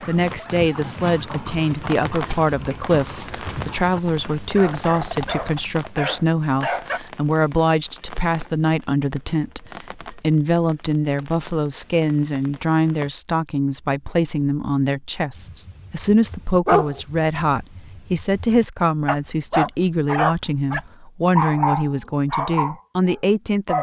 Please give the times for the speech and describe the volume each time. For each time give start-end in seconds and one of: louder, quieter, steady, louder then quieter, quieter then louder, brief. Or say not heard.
0.1-23.7 steady.